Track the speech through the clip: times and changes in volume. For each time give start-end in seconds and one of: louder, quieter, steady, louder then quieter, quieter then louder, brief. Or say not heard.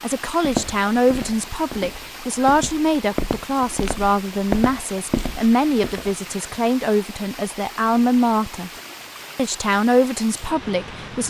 0.0-8.7 steady
9.3-11.2 brief.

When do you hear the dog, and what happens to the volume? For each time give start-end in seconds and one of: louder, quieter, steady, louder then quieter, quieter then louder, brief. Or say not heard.
not heard.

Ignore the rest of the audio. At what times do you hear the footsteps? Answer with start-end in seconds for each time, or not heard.
0.4-6.2.